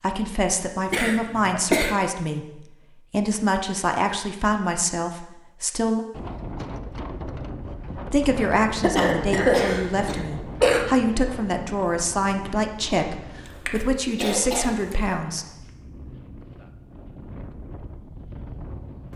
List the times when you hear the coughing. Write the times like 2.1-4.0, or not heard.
0.9-1.9, 8.8-10.8, 13.7-14.9.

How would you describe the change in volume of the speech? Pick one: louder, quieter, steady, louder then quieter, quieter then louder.
steady.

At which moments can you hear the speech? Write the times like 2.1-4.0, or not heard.
0.0-6.0, 8.1-15.4.